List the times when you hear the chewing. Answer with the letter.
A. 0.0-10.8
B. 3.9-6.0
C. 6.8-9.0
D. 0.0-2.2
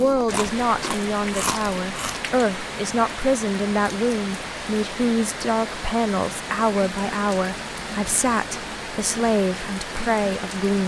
D.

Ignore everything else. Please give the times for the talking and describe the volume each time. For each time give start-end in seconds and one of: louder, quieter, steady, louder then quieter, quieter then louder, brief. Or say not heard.
0.0-10.8 steady.